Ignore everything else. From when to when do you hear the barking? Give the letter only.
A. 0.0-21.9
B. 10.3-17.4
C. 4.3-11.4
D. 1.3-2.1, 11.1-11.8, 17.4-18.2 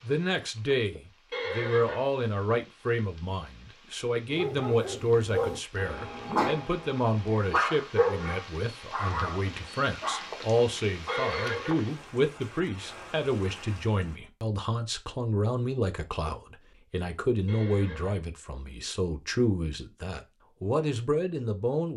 C.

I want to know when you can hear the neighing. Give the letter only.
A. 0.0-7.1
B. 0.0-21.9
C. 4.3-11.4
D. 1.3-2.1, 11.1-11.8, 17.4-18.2
D.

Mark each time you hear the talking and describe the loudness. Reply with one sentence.
The talking can be heard from 0.0 to 21.9 s, at a steady volume.